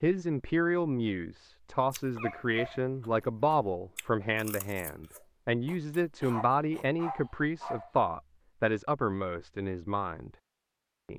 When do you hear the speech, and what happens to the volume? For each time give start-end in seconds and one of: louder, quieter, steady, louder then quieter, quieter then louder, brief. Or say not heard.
0.0-10.3 steady.